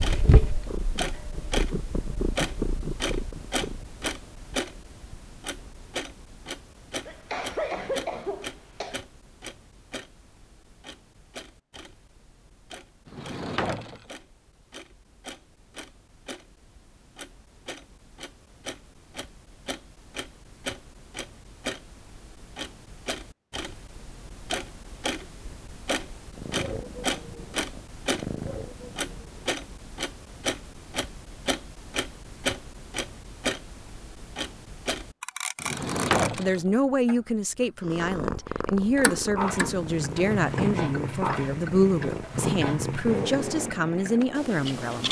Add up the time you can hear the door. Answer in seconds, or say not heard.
2 s.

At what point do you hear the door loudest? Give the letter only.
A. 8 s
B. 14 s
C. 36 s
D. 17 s
C.